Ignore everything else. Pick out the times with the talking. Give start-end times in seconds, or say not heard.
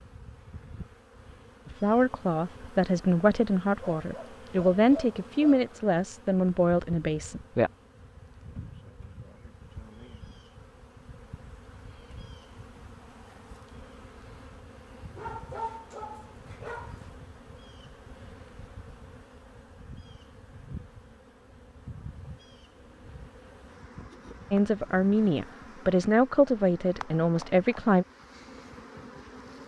1.6-7.7, 24.5-28.1.